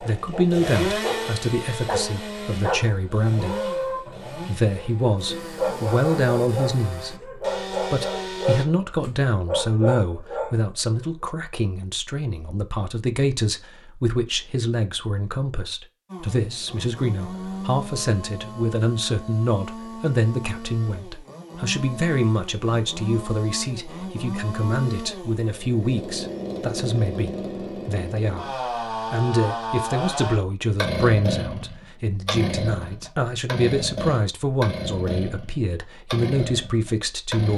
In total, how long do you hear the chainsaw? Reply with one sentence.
You can hear the chainsaw for 30 seconds altogether.